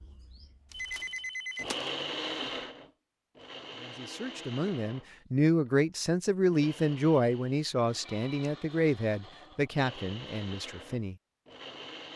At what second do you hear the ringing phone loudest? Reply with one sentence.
The loudest moment of the ringing phone is at 1 second.